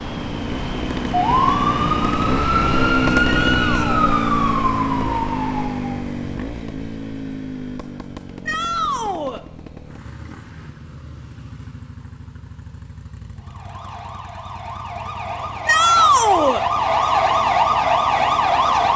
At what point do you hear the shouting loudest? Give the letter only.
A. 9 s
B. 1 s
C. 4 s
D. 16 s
D.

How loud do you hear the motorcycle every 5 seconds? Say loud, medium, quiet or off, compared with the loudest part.
loud, medium, quiet, quiet.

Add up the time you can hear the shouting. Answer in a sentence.
The shouting can be heard for 3 seconds in total.